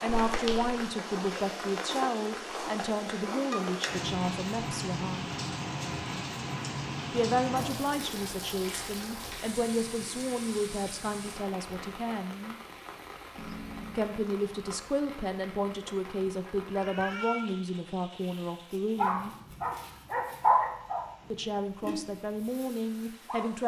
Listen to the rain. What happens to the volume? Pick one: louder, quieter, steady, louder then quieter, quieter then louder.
quieter.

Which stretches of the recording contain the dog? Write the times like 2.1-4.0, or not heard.
18.2-21.1, 21.8-23.4.